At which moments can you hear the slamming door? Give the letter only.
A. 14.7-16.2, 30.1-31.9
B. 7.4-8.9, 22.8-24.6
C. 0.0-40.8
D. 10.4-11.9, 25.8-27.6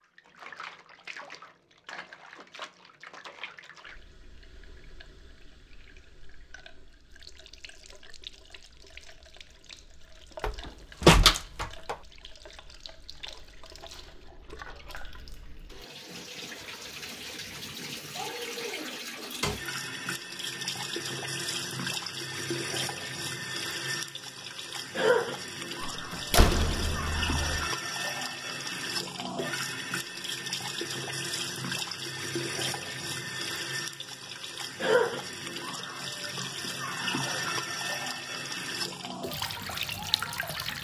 D.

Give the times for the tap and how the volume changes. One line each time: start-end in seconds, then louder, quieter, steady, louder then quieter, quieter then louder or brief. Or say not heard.
0.0-40.8 louder.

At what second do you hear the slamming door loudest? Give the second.
11 s.